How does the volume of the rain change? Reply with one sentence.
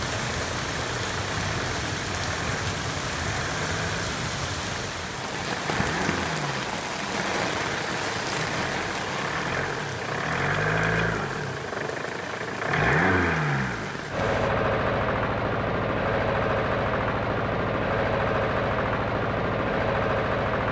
The loudness of the rain goes down.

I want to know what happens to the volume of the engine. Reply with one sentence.
The volume of the engine goes up.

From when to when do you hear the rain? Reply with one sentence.
You can hear the rain from 0.0 to 14.6 s.